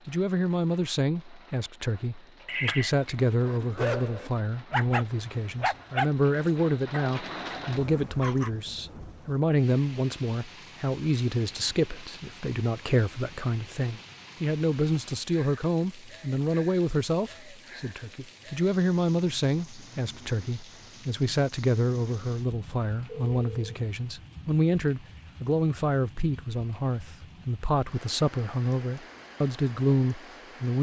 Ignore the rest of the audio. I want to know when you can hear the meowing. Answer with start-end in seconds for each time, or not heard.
2.5-3.1.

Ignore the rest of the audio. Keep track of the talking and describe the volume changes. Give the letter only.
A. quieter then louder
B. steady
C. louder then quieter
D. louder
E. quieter
B.